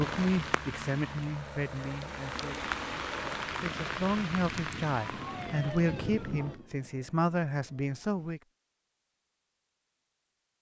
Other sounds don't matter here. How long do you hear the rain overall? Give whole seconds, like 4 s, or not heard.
7 s.